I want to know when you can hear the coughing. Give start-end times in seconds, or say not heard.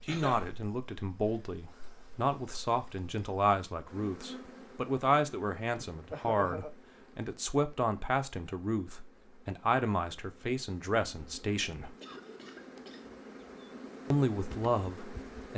0.1-0.6, 6.1-6.7, 11.9-13.2.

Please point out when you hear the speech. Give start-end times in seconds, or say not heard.
0.1-11.9, 14.1-15.5.